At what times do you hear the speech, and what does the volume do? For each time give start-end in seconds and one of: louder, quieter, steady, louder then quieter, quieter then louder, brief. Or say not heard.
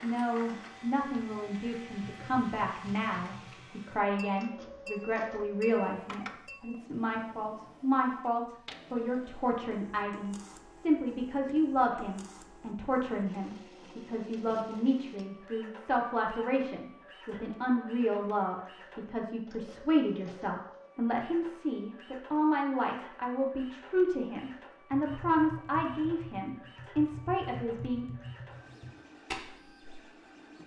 0.0-28.1 steady.